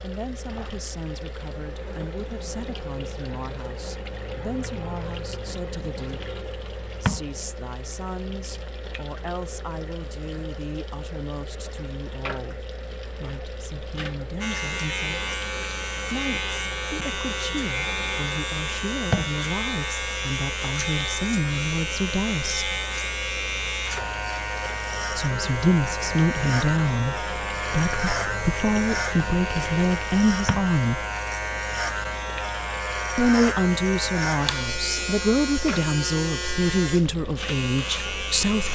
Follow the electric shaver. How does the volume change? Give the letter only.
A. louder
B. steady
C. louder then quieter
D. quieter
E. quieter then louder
B.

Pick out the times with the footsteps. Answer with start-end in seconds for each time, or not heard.
not heard.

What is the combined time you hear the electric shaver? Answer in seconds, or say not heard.
24 s.